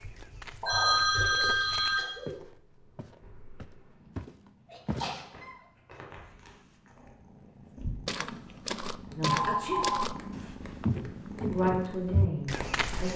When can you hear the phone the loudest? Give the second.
1 s.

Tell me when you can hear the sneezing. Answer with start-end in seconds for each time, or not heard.
1.1-2.4, 4.7-5.5, 9.4-9.8.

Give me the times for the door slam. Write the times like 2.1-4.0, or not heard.
not heard.